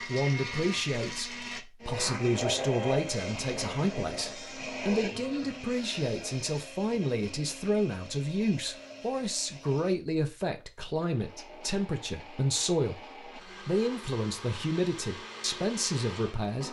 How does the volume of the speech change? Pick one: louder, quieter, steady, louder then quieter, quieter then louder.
steady.